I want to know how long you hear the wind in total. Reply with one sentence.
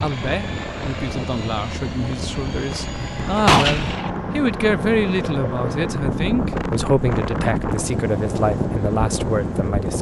You can hear the wind for 10 seconds altogether.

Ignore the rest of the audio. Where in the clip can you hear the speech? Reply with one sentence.
You can hear the speech from 0.0 to 9.9 s.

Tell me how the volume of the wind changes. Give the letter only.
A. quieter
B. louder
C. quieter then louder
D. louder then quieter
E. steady
B.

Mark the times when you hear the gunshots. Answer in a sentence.
The gunshots can be heard from 3.0 to 4.1 s.